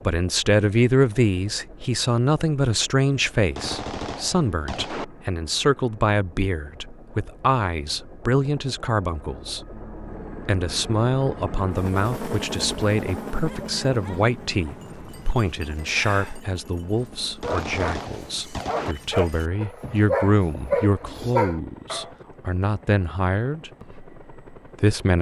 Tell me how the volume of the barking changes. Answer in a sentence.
The volume of the barking goes up.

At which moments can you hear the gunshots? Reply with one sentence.
You can hear the gunshots from 3.1 to 5.0 s and from 17.1 to 18.9 s.